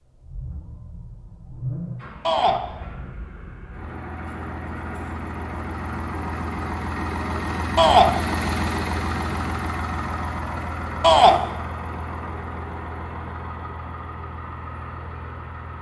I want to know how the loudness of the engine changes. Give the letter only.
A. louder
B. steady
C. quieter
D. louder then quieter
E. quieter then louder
D.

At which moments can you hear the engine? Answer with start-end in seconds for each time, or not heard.
0.0-15.7.